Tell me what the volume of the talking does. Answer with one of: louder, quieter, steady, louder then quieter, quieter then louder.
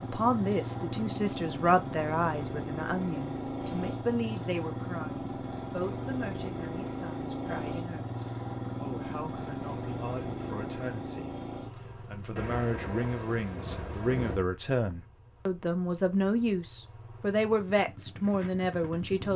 quieter then louder.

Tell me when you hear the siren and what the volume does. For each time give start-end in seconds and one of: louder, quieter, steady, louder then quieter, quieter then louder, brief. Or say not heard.
not heard.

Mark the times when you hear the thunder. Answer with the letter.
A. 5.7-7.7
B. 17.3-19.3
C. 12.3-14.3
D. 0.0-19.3
C.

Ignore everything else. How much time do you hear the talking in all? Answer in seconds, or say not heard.
19 s.